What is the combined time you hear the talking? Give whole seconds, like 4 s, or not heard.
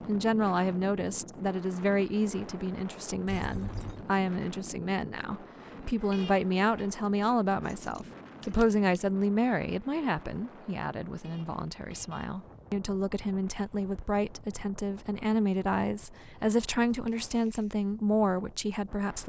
19 s.